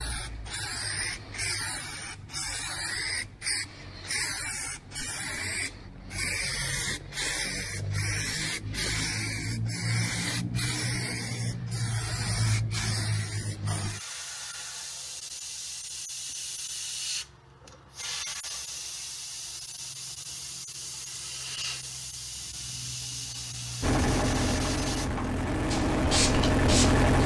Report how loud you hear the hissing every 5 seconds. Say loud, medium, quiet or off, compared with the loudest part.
loud, loud, loud, medium, medium, loud.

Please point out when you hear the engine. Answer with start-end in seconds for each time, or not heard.
23.8-27.2.